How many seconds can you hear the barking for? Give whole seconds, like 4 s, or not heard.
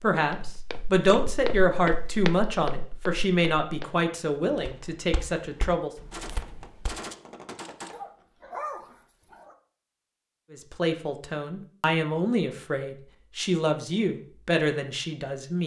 2 s.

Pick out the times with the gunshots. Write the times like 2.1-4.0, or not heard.
6.1-8.0.